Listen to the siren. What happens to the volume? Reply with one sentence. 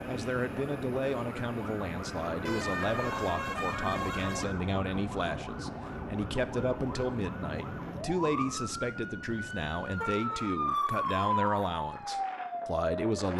The volume of the siren goes up.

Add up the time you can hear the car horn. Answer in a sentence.
The car horn can be heard for 3 seconds in total.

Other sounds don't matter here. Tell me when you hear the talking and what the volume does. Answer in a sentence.
You can hear the talking from 0.1 to 13.3 s, at a steady volume.